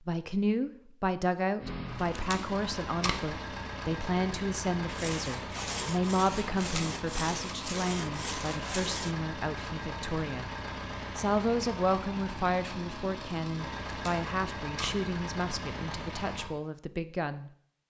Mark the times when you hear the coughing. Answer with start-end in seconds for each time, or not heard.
not heard.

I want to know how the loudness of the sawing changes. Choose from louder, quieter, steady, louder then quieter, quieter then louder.
steady.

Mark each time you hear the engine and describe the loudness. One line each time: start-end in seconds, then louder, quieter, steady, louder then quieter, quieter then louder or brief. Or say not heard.
1.6-16.5 steady.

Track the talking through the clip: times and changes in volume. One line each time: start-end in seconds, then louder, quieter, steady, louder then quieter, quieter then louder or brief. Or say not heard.
0.0-10.6 quieter
11.2-17.5 quieter.